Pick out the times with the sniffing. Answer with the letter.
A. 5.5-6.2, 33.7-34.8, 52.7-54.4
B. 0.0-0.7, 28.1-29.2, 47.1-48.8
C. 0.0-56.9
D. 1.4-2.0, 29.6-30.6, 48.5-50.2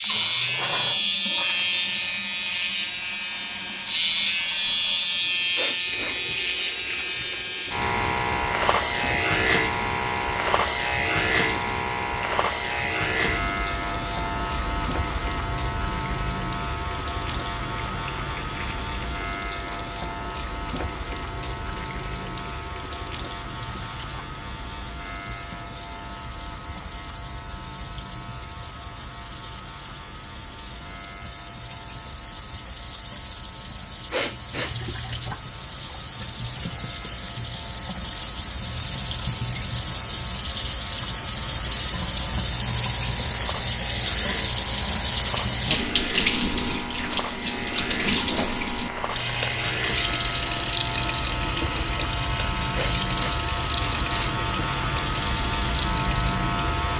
A.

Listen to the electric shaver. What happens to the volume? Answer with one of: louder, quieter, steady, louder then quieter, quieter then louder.
quieter then louder.